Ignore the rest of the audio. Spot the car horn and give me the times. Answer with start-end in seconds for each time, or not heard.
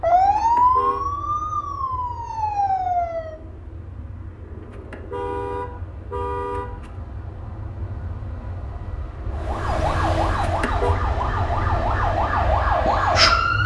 0.3-1.1, 4.6-6.9, 10.4-10.9.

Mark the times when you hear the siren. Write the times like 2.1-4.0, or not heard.
0.0-3.4, 9.3-13.6.